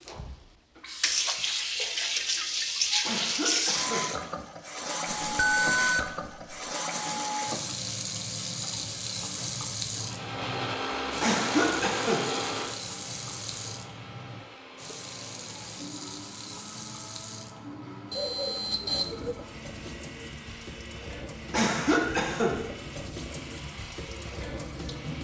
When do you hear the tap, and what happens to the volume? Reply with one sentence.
You can hear the tap from 0.0 to 25.1 s, getting quieter.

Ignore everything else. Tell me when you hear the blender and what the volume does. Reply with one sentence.
You can hear the blender from 10.0 to 25.1 s, getting quieter.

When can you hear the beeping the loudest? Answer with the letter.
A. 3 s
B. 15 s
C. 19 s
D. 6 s
D.